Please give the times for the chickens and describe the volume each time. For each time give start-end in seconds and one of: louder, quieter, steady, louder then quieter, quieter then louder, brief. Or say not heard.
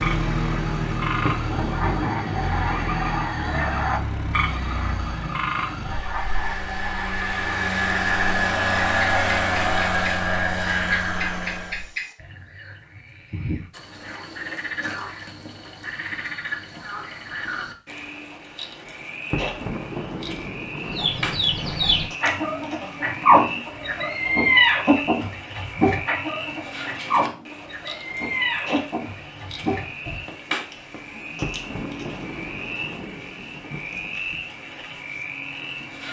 20.9-30.2 louder then quieter.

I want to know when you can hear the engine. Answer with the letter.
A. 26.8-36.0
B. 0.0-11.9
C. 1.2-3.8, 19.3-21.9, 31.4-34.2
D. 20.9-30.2
B.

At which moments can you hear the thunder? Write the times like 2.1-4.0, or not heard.
1.2-3.8, 19.3-21.9, 31.4-34.2.